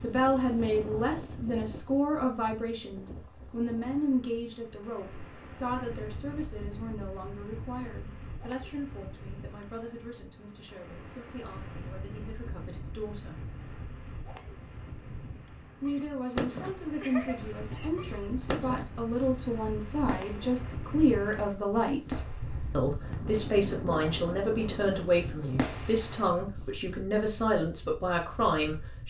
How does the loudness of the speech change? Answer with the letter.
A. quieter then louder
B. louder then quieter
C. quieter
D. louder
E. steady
A.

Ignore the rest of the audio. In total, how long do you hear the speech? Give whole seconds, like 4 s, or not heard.
27 s.